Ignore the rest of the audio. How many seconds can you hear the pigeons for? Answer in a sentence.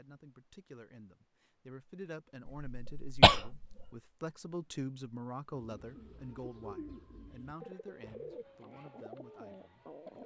The pigeons can be heard for 5 seconds in total.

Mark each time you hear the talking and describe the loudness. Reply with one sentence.
You can hear the talking from 0.0 to 10.2 s, getting louder then quieter.